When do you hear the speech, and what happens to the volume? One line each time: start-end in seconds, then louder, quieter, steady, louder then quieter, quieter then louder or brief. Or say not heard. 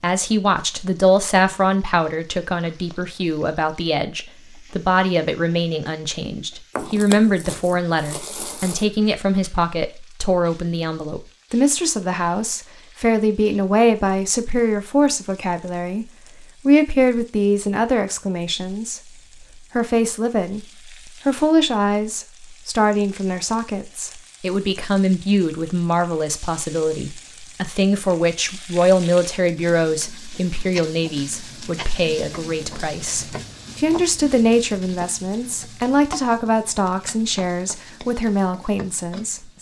0.0-39.5 steady.